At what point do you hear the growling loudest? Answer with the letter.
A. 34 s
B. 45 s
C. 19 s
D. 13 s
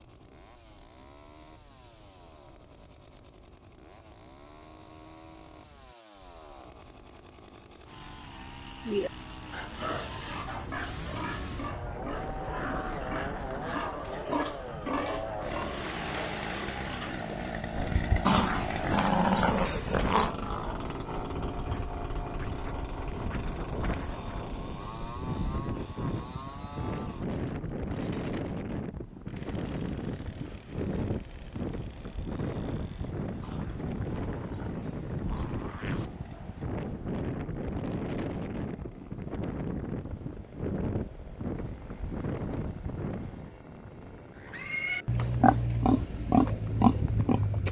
C.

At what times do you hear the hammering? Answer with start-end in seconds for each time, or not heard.
not heard.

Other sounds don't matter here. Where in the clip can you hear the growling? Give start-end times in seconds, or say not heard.
12.2-13.9, 18.2-20.4, 33.4-36.1.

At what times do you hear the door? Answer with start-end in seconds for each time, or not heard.
not heard.